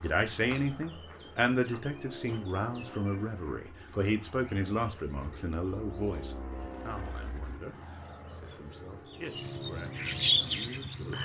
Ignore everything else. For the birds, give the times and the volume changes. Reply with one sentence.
You can hear the birds from 0.0 to 11.2 s, getting quieter then louder.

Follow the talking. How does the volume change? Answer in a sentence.
The volume of the talking goes down.